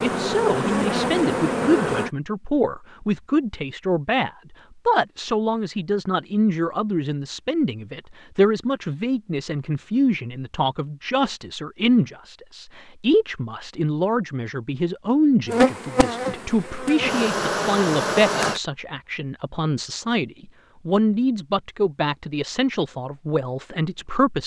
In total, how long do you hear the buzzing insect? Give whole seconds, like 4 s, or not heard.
5 s.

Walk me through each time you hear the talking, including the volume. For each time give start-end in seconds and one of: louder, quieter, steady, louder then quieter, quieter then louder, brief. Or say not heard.
0.0-24.4 steady.